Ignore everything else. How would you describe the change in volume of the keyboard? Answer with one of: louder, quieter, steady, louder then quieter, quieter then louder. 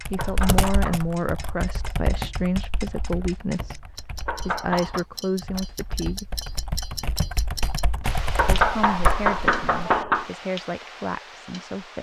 quieter then louder.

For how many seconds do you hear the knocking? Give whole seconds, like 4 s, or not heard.
4 s.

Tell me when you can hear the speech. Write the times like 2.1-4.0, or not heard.
0.1-3.9, 4.5-6.3, 8.4-11.9.